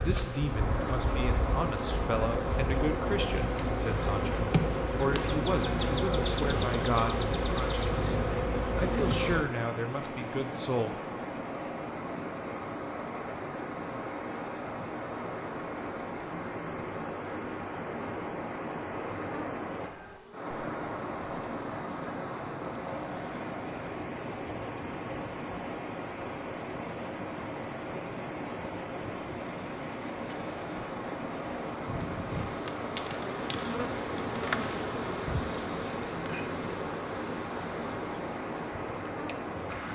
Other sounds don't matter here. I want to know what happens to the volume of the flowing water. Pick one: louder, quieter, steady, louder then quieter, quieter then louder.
steady.